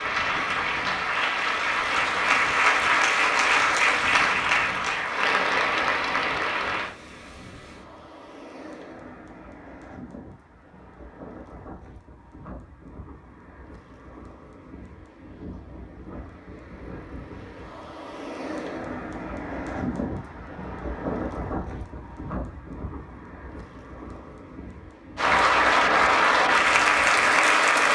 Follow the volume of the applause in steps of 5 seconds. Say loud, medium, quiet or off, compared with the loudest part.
loud, medium, off, off, off, loud.